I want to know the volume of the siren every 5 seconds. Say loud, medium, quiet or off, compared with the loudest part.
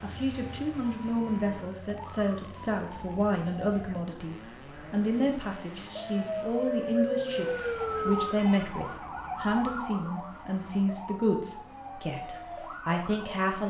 quiet, loud, medium.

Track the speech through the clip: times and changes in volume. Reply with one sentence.
You can hear the speech from 0.0 to 13.6 s, at a steady volume.